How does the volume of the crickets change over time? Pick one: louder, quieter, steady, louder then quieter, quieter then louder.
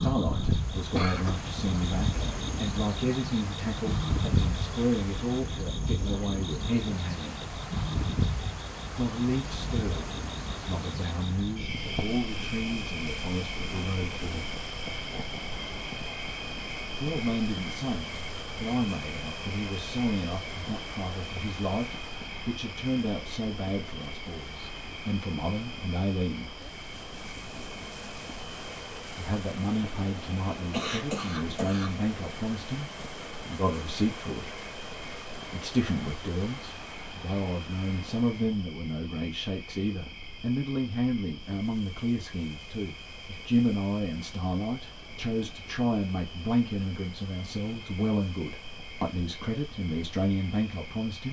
quieter.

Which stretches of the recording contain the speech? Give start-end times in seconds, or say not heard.
0.0-7.5, 8.9-14.5, 17.0-26.6, 29.1-34.6, 35.5-51.2.